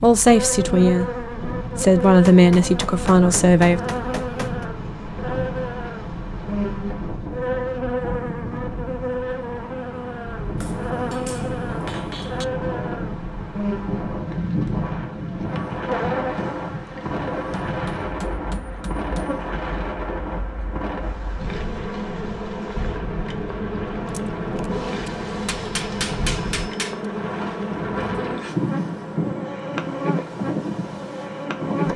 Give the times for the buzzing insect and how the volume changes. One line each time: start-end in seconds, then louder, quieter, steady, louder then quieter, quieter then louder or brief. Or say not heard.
0.0-31.9 steady.